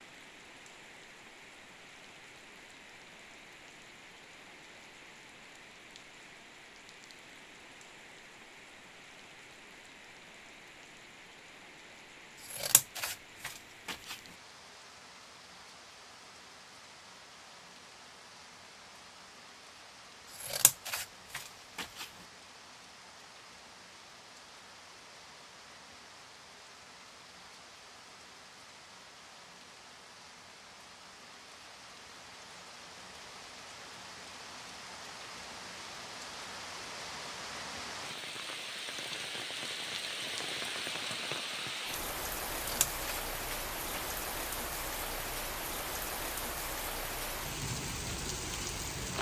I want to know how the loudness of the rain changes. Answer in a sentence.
The volume of the rain goes up.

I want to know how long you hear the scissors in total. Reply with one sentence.
The scissors can be heard for 5 seconds in total.